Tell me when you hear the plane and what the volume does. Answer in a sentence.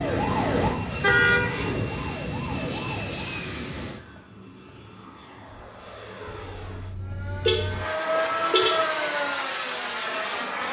You can hear the plane from 0.1 to 10.6 s, getting quieter then louder.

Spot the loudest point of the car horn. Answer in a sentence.
The volume of the car horn peaks at 1 second.